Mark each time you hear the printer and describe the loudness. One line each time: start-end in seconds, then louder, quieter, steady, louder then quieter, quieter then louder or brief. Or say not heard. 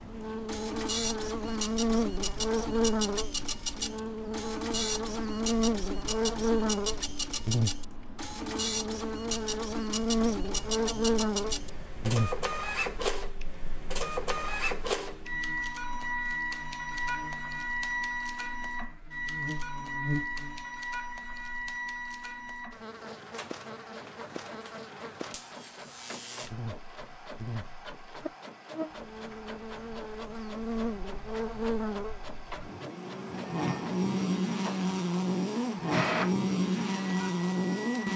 0.0-38.1 quieter then louder.